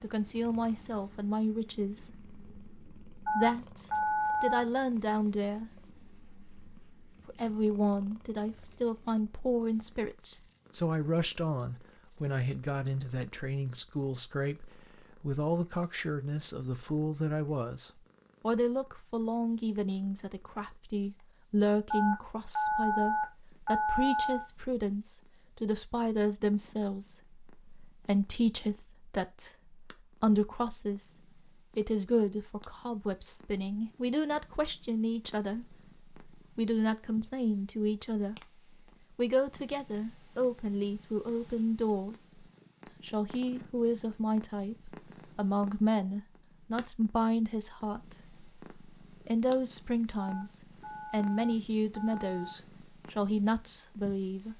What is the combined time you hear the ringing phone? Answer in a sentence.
You can hear the ringing phone for 6 seconds altogether.